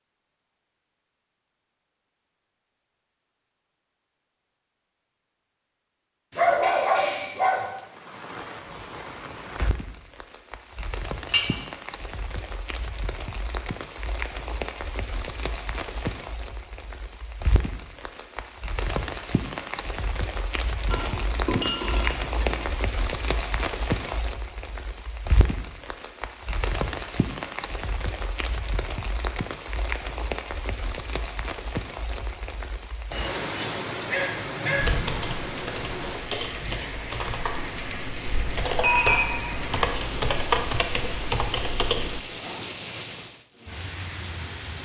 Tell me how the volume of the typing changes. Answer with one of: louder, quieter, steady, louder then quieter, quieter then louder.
louder.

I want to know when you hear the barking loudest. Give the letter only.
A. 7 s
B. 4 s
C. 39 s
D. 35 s
A.